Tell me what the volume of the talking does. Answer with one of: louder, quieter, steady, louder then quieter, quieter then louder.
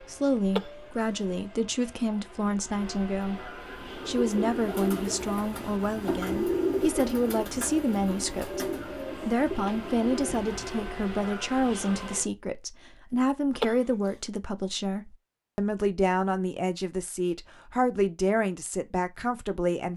steady.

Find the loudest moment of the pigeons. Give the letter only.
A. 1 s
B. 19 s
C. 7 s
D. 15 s
C.